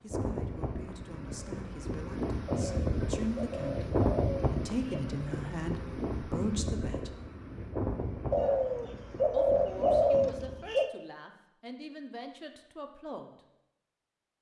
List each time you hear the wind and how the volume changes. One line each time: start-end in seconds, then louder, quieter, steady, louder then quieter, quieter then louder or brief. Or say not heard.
0.1-10.7 louder then quieter.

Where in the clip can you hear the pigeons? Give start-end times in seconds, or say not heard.
2.5-5.1, 8.3-10.9.